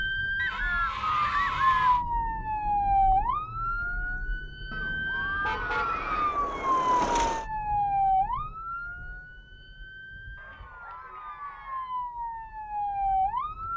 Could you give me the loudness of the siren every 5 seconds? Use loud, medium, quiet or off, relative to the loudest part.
loud, loud, medium.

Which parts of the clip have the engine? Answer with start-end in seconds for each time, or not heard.
5.8-7.5.